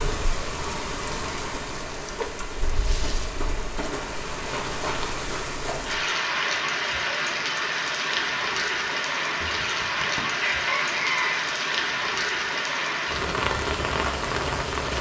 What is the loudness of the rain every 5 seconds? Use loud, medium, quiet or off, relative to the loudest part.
medium, loud, loud.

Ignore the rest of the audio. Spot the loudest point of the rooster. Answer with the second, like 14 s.
11 s.